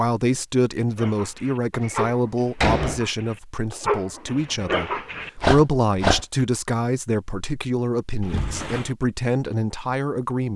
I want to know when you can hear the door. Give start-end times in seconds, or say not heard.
1.8-3.0, 8.2-8.9.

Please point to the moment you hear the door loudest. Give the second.
3 s.